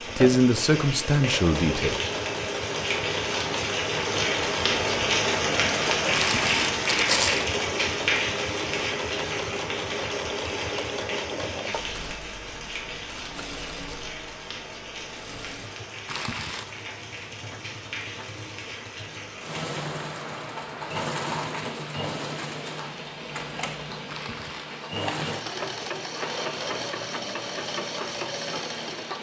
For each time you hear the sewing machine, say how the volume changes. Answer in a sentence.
You can hear the sewing machine from 0.0 to 29.1 s, getting quieter then louder.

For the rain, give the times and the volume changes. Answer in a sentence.
The rain can be heard from 0.0 to 29.1 s, getting quieter.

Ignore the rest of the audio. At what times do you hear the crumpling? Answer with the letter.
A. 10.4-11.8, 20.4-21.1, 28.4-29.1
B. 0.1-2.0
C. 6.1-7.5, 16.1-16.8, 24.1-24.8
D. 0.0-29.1
C.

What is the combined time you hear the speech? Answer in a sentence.
The speech can be heard for 2 seconds in total.